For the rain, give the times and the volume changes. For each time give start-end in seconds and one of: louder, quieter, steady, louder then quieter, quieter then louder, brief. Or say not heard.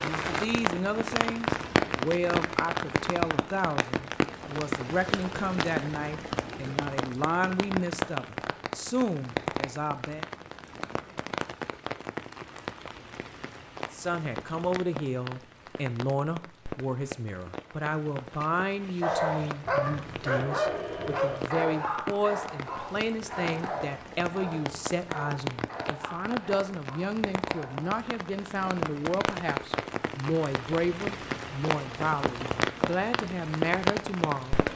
0.0-34.7 quieter then louder.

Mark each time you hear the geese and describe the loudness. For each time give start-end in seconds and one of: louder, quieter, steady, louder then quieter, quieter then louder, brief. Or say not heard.
not heard.